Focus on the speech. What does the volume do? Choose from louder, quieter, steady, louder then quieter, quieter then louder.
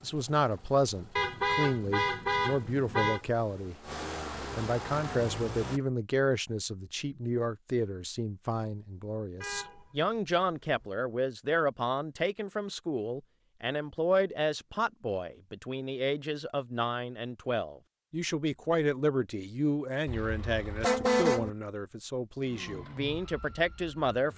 steady.